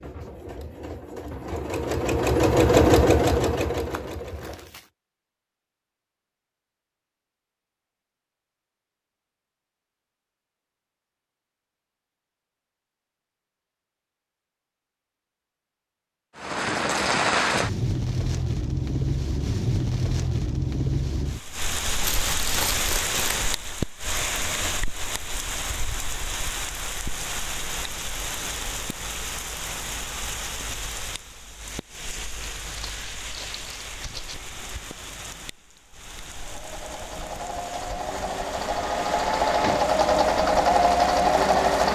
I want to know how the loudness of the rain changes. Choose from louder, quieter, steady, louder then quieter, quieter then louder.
quieter.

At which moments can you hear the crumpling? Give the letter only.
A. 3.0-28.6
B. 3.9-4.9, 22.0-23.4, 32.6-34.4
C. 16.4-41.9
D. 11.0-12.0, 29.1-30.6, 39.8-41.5
B.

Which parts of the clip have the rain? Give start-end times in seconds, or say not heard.
16.4-41.9.